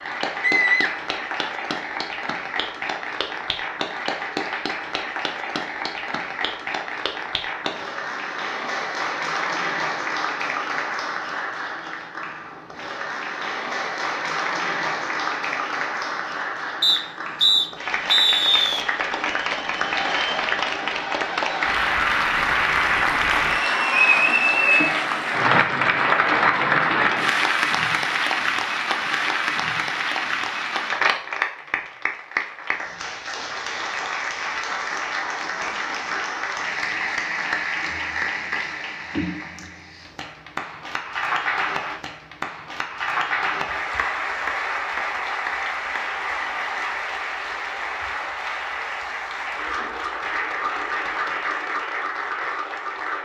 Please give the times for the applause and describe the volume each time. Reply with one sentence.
The applause can be heard from 0.0 to 53.2 s, getting louder then quieter.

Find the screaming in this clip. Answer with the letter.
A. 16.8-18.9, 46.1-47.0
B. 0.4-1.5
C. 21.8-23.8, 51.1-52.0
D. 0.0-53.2
B.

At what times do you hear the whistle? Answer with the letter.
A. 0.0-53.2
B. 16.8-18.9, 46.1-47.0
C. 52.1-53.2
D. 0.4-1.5
B.